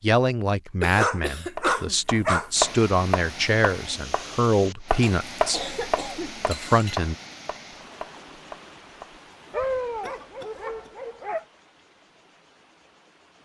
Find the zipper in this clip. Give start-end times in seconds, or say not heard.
not heard.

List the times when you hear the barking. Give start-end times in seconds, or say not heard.
0.9-2.5, 9.5-11.4.